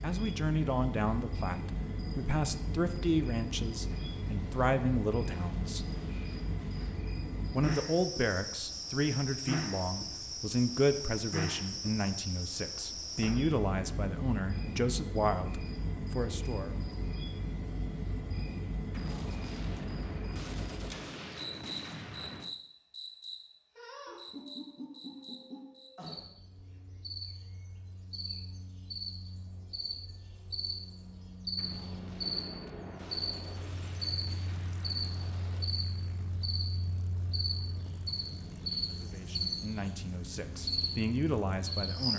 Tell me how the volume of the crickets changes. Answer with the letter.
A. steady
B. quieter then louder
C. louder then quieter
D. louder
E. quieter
A.